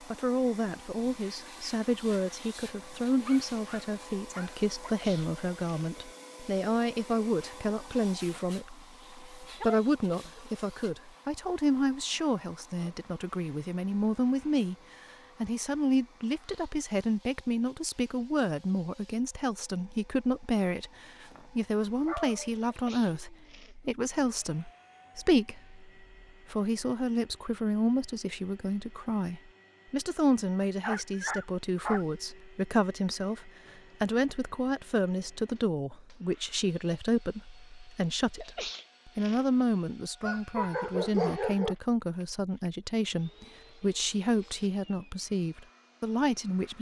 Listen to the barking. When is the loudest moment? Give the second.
41 s.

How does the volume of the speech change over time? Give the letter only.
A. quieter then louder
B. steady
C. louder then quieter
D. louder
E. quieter
B.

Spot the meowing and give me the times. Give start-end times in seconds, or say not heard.
not heard.